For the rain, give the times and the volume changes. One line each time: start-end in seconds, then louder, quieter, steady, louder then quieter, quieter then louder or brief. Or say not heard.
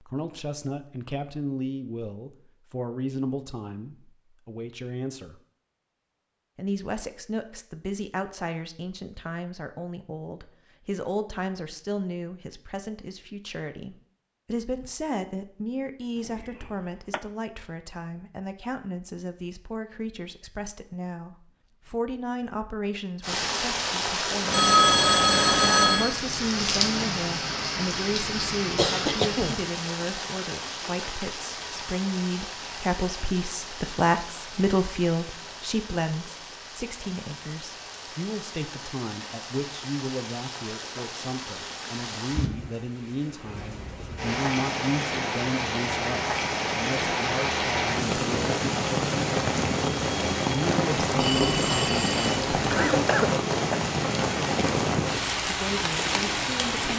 23.2-56.9 quieter then louder.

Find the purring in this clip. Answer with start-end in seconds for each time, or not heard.
not heard.